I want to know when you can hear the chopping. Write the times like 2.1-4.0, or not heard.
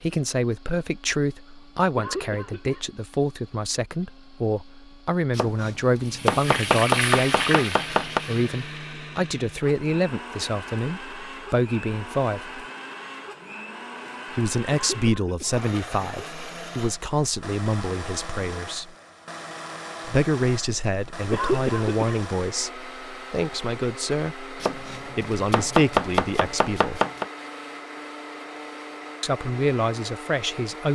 5.3-8.2, 24.6-27.2.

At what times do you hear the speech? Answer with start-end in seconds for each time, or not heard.
0.0-12.6, 14.3-18.9, 20.1-27.0, 29.2-30.9.